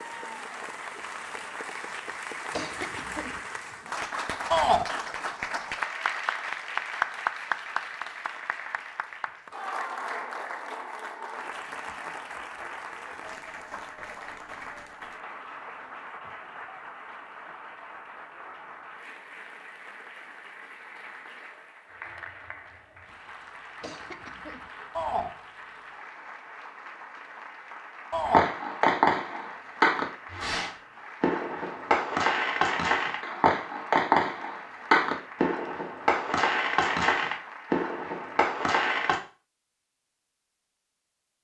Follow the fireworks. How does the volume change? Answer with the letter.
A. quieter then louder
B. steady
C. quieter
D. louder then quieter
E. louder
B.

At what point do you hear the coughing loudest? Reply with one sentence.
The volume of the coughing peaks at 3 seconds.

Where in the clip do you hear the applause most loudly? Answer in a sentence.
The loudest moment of the applause is at 7 seconds.